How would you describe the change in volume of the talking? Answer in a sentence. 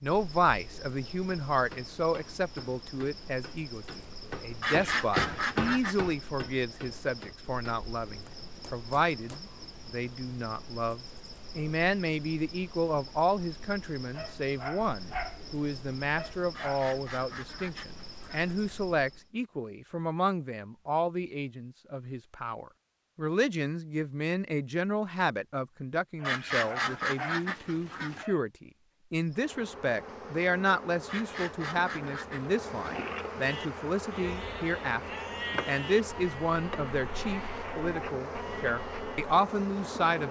The volume of the talking stays about the same.